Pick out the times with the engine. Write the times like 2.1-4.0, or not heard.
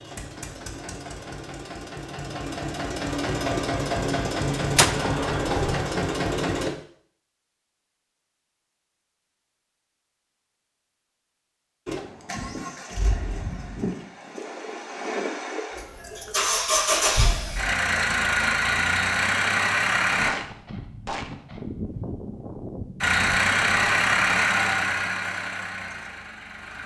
0.0-6.7, 11.8-20.4, 23.0-26.8.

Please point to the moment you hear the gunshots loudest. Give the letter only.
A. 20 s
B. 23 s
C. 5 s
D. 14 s
C.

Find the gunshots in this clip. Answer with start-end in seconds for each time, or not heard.
4.8-5.8, 20.1-24.1.